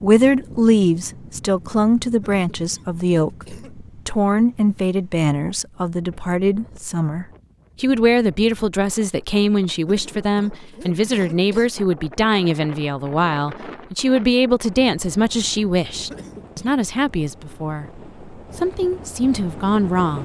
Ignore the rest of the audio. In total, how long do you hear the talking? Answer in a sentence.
The talking can be heard for 20 seconds in total.